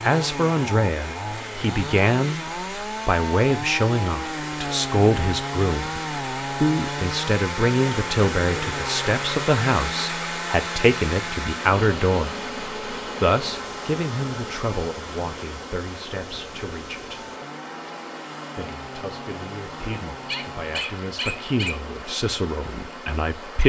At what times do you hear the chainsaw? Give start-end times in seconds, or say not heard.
0.0-20.9.